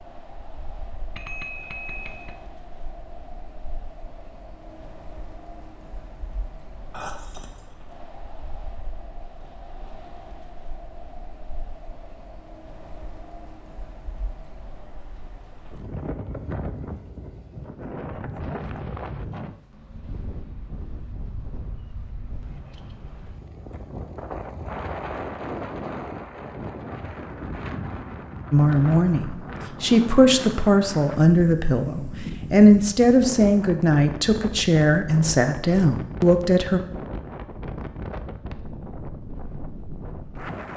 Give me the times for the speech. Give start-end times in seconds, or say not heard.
28.5-36.8.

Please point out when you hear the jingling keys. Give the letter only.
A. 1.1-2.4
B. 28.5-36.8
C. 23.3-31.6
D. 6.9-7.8
D.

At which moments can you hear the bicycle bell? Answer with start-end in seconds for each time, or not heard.
1.1-2.4.